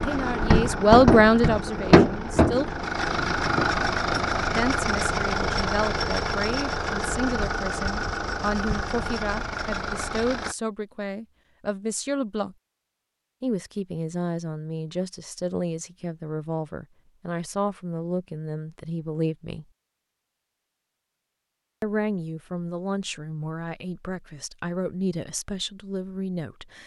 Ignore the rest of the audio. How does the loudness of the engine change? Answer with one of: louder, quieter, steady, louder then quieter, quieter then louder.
quieter.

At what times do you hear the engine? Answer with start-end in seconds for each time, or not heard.
0.0-10.6.